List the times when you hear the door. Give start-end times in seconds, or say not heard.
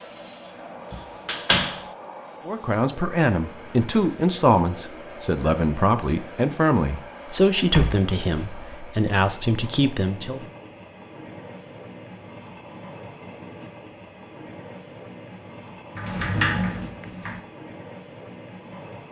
0.9-1.8, 7.7-8.8, 15.9-17.4.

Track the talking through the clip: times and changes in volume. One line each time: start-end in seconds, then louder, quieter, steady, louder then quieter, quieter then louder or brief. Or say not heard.
2.5-10.4 steady.